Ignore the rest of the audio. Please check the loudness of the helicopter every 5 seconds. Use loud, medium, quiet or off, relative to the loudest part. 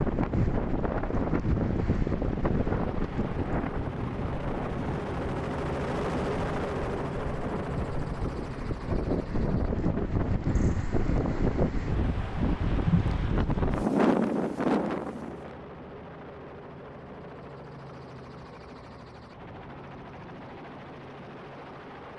medium, loud, medium, medium, medium.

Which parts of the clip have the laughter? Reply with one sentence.
The laughter can't be heard in this clip.